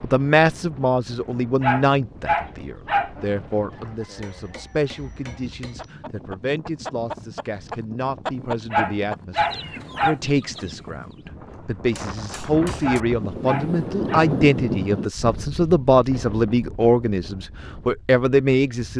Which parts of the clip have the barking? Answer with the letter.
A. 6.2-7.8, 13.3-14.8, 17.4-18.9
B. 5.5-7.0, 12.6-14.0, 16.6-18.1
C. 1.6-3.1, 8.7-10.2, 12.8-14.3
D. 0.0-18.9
C.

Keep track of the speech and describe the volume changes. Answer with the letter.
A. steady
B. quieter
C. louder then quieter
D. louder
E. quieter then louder
E.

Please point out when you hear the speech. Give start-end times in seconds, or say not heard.
0.0-18.9.